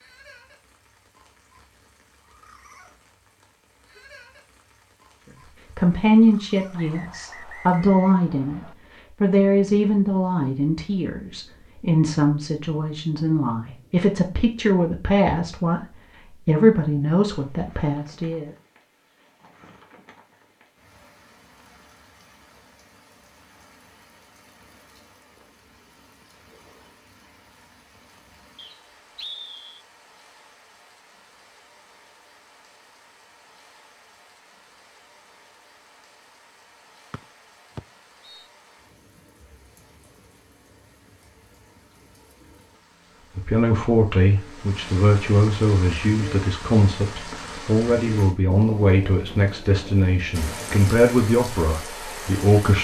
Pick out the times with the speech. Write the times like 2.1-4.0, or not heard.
5.8-15.8, 16.4-18.5, 43.4-52.7.